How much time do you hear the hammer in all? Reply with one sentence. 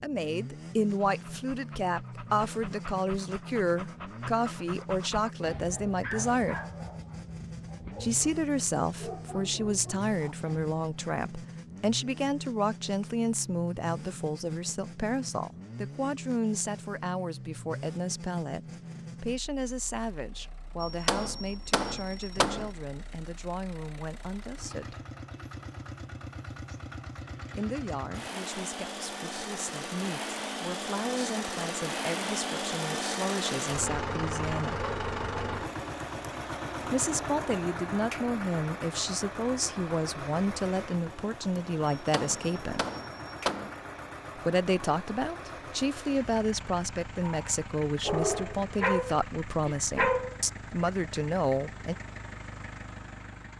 You can hear the hammer for 4 seconds altogether.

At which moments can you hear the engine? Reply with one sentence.
The engine can be heard from 0.0 to 53.5 s.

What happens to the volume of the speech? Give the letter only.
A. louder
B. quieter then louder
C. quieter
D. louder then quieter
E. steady
B.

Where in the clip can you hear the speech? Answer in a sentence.
The speech can be heard from 0.0 to 6.6 s, from 8.0 to 25.1 s, from 27.6 to 34.9 s, from 36.9 to 42.9 s and from 44.4 to 52.0 s.